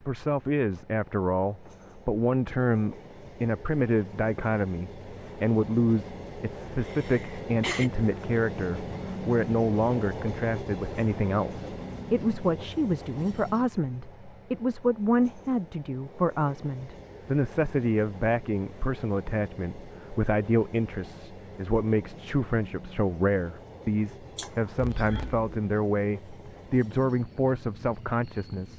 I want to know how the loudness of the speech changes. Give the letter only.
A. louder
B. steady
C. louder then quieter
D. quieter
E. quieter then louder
B.